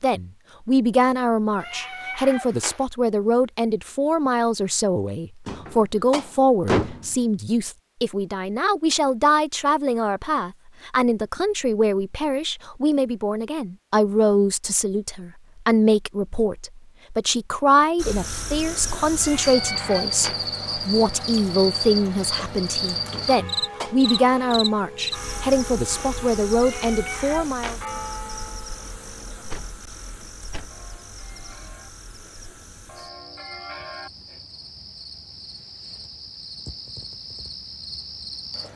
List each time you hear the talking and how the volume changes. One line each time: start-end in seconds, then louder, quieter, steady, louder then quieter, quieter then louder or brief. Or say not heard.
0.0-27.8 steady.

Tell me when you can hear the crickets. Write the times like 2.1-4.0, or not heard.
17.9-38.7.